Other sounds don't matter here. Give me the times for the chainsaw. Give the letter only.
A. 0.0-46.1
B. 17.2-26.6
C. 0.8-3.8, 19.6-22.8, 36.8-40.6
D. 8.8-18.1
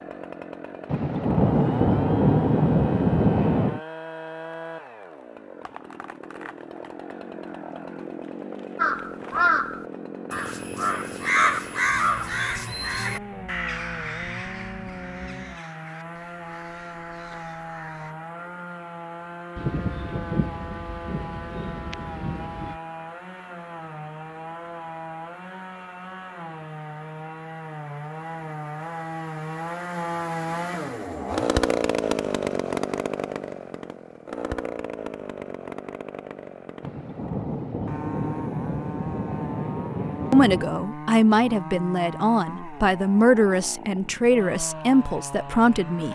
A.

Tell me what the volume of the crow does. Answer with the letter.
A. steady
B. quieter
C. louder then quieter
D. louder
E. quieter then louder
B.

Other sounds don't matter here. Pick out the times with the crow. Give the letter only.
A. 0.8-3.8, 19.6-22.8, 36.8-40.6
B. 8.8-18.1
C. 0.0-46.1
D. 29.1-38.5
B.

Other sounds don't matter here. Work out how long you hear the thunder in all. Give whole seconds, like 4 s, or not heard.
10 s.